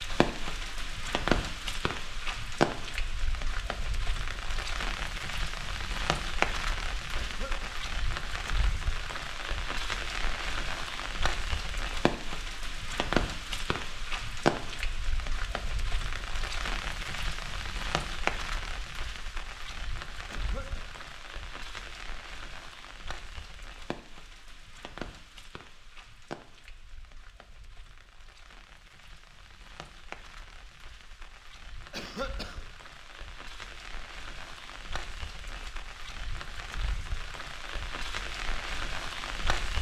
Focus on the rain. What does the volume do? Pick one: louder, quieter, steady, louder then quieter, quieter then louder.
quieter then louder.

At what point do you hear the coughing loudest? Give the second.
32 s.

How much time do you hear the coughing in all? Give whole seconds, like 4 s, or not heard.
2 s.